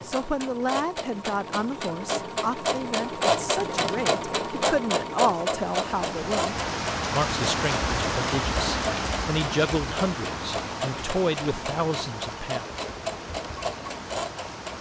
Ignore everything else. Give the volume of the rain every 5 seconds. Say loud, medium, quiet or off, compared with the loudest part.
off, loud, medium.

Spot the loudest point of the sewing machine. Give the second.
4 s.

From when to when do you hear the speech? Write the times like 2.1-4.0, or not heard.
0.0-12.7.